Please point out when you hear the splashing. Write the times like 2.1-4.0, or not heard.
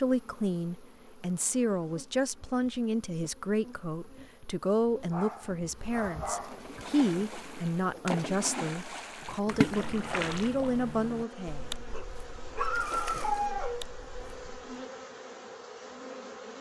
6.5-14.8.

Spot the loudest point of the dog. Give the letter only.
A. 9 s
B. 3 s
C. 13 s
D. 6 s
C.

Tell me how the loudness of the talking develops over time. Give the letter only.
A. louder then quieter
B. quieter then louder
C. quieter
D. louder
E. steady
E.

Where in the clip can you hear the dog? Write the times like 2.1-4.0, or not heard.
5.1-6.7, 11.9-13.8.